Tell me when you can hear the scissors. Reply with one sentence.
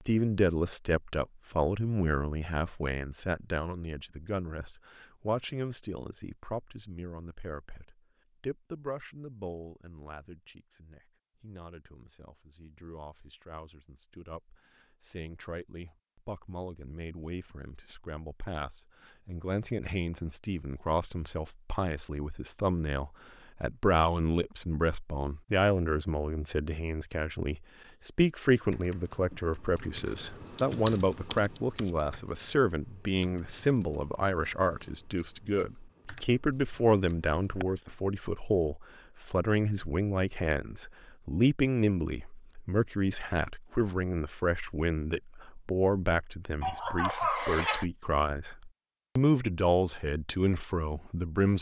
You can't hear the scissors here.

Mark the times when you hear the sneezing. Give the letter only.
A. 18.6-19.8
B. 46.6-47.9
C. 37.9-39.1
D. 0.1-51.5
B.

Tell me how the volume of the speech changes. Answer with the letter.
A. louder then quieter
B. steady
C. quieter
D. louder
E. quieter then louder
E.